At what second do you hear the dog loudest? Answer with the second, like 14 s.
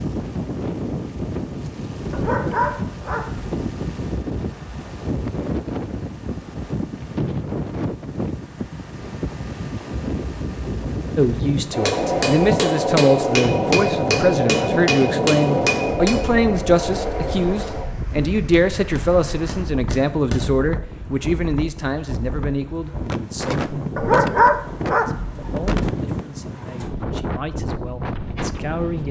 24 s.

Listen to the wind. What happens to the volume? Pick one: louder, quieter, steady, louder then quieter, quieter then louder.
quieter then louder.